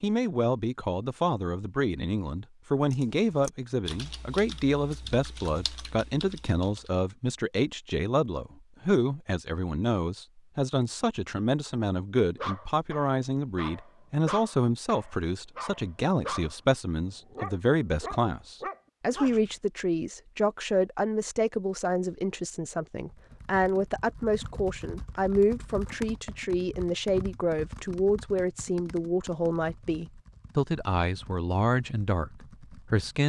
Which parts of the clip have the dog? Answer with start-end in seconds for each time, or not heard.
12.3-16.6, 17.3-19.5.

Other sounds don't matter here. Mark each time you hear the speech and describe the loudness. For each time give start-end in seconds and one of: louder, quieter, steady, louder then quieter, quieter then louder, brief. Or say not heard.
0.0-33.2 steady.